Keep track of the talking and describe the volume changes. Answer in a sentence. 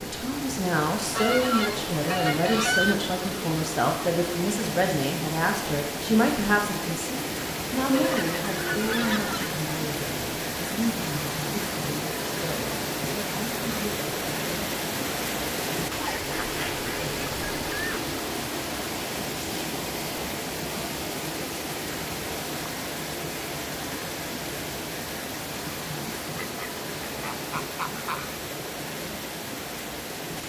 The volume of the talking goes down.